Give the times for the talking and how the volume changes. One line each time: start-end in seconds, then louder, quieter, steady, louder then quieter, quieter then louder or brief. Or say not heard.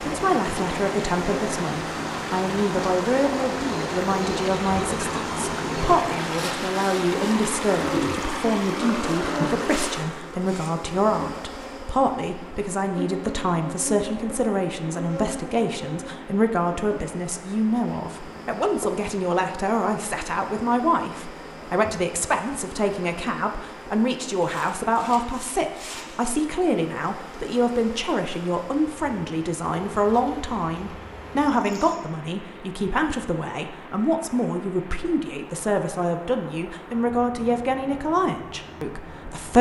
0.0-39.5 steady.